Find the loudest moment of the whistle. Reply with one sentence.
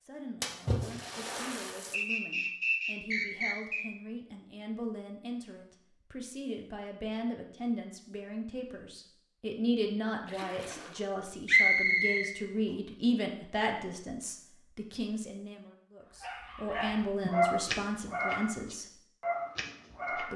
The volume of the whistle peaks at 12 seconds.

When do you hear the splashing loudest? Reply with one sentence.
The volume of the splashing peaks at 1 second.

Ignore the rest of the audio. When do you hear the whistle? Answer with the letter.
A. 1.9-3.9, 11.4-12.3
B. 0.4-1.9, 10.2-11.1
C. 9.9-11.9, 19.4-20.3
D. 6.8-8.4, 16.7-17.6
A.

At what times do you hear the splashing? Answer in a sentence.
The splashing can be heard from 0.4 to 1.9 s and from 10.2 to 11.1 s.